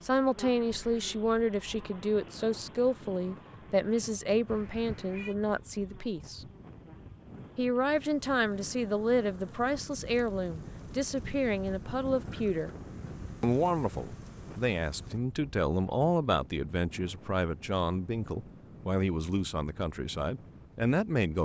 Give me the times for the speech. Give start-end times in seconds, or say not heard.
0.0-6.5, 7.5-12.7, 13.4-21.4.